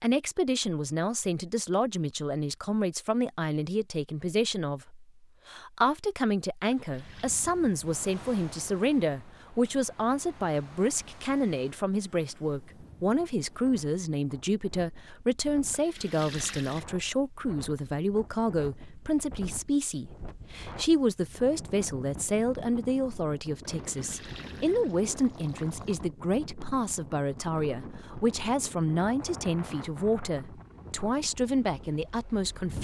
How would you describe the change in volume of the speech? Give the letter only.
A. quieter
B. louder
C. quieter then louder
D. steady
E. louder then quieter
D.